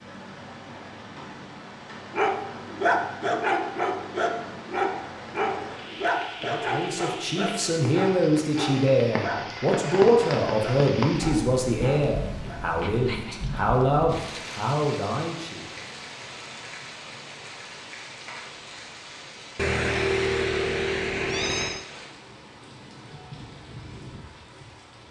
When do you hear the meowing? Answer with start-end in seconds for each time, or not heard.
19.6-21.9.